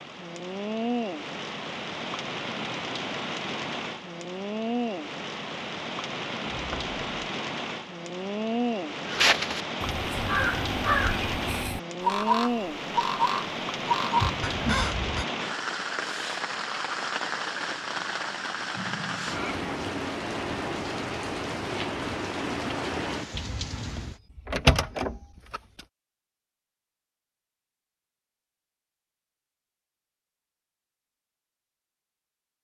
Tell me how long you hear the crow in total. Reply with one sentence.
The crow can be heard for 6 seconds in total.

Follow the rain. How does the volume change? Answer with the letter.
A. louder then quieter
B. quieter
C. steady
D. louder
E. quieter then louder
C.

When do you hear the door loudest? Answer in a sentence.
The volume of the door peaks at 25 seconds.